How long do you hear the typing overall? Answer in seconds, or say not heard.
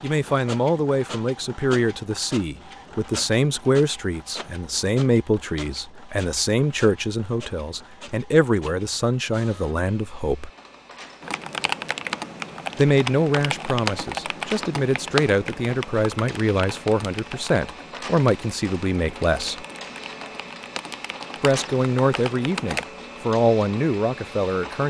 12 s.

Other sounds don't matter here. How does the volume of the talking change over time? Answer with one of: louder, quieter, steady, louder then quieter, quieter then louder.
steady.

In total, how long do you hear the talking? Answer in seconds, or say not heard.
21 s.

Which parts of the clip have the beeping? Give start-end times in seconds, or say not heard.
not heard.